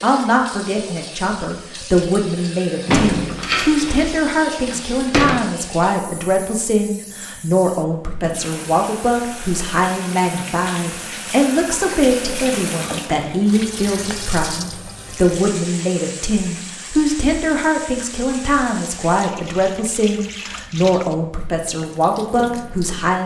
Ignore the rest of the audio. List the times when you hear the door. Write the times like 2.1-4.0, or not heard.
2.9-5.5.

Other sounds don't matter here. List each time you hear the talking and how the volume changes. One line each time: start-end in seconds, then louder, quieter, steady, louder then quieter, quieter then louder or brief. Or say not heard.
0.0-23.2 steady.